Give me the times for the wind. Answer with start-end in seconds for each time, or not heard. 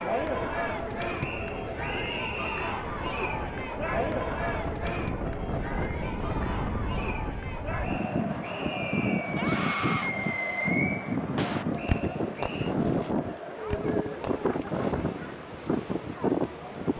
0.2-16.9.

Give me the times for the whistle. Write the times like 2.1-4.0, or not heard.
1.2-2.9, 7.8-9.2, 11.8-12.8.